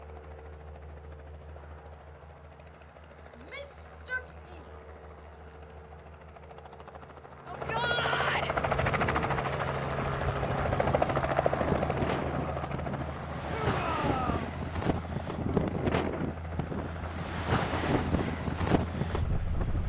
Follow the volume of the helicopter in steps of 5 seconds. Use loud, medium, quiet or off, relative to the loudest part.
quiet, loud, loud, medium.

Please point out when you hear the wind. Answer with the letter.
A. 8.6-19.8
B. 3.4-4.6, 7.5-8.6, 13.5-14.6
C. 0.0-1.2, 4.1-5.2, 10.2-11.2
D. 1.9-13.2
A.